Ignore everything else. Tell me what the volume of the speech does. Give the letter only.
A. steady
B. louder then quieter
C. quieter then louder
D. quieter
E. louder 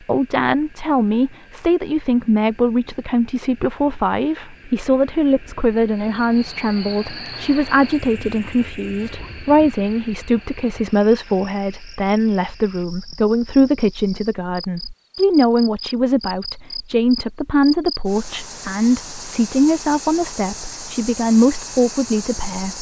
A.